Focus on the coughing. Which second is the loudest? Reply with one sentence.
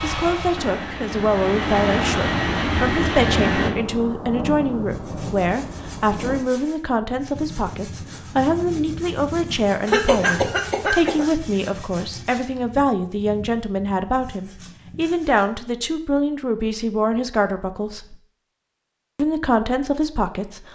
The volume of the coughing peaks at 10 seconds.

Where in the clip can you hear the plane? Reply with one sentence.
The plane can be heard from 0.0 to 3.7 s.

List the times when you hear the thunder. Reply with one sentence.
You can hear the thunder from 3.1 to 6.5 s.